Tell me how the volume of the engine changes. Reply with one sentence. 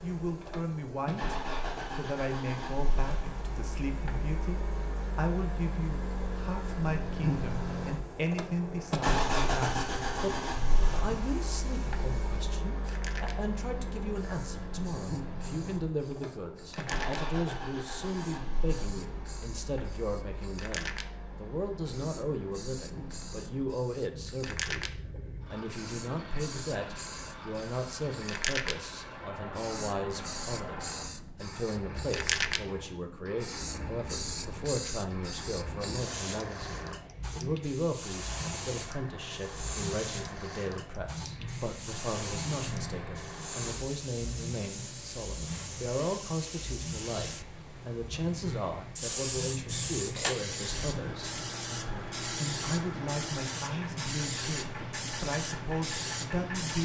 The loudness of the engine goes down.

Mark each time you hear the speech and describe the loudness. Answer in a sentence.
The speech can be heard from 0.0 to 56.7 s, at a steady volume.